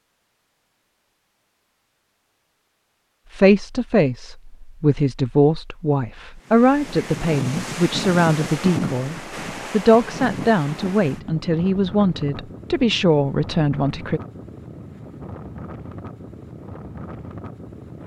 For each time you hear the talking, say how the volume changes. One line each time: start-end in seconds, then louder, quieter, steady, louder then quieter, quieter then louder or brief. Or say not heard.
3.3-14.2 steady.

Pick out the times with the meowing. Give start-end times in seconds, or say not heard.
not heard.